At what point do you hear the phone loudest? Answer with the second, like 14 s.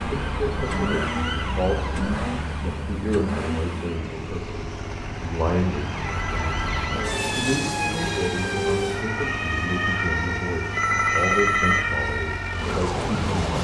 11 s.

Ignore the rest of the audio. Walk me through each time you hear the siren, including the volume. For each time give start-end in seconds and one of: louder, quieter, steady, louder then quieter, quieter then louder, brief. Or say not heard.
0.0-13.5 quieter then louder.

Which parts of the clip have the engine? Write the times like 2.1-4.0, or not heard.
0.0-13.5.